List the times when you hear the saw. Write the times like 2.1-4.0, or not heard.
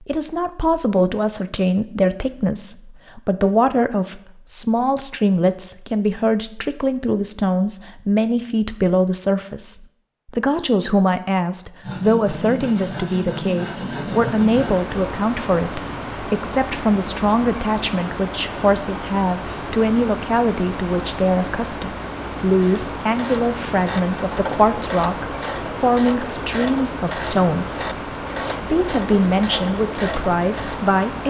11.8-14.8.